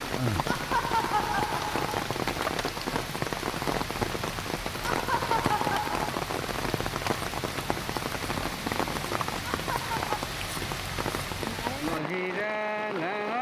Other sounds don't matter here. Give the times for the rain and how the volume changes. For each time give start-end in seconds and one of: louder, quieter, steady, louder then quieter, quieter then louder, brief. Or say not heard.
0.0-13.3 steady.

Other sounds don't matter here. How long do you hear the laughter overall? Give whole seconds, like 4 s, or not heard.
3 s.